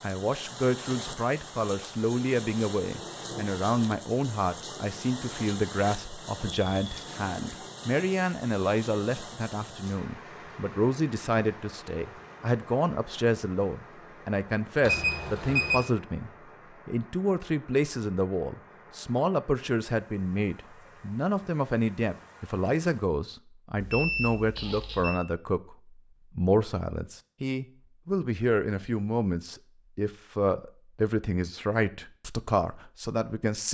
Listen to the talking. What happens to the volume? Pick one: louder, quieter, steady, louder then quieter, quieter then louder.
steady.